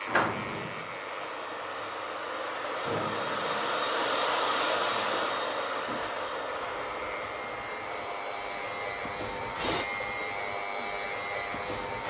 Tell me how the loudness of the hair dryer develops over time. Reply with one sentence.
The loudness of the hair dryer goes up, then down.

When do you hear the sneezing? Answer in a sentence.
You can't hear the sneezing here.